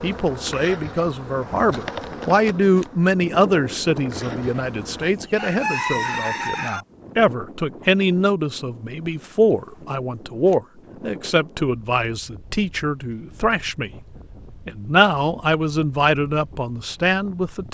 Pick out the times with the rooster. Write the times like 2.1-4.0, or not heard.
5.0-6.8.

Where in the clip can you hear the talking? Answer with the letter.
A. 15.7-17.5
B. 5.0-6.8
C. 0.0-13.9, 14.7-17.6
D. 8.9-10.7
C.